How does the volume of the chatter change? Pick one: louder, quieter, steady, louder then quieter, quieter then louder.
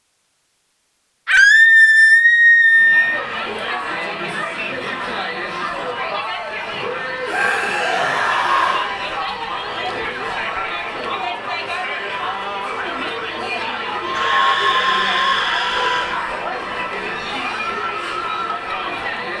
steady.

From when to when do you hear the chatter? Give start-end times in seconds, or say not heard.
2.7-19.3.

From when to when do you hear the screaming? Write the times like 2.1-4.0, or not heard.
1.2-3.2, 7.2-8.9, 14.1-16.1.